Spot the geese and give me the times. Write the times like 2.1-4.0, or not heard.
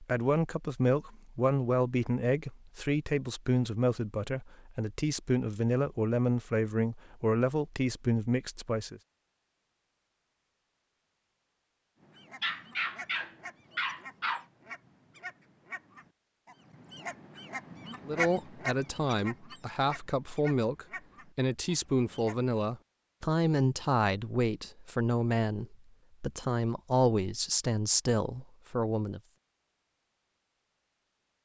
12.0-22.6.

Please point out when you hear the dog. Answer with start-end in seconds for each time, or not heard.
12.4-14.4.